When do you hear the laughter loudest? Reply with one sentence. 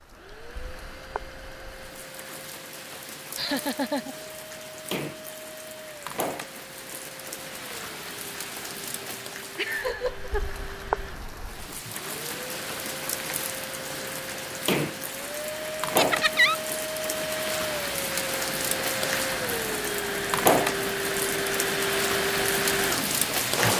The loudest moment of the laughter is at 16 seconds.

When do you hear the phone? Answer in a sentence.
The phone can't be heard in this clip.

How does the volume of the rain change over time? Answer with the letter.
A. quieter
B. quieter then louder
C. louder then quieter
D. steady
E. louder
E.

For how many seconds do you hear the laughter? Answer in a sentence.
The laughter can be heard for 3 seconds in total.